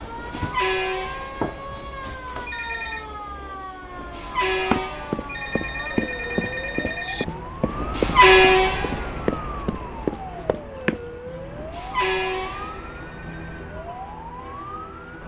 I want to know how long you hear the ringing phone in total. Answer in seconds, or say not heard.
4 s.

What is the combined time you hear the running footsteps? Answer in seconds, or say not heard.
9 s.